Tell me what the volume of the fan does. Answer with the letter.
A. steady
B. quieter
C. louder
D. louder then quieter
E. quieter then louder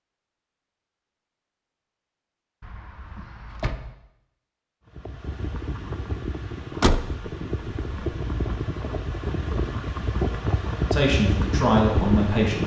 C.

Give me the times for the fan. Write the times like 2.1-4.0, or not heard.
4.8-12.6.